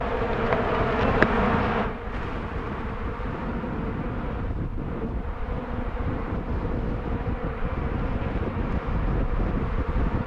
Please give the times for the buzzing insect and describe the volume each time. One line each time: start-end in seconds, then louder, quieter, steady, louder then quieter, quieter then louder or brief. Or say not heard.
0.0-10.2 quieter.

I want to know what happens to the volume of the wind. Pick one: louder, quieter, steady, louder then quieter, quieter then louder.
louder.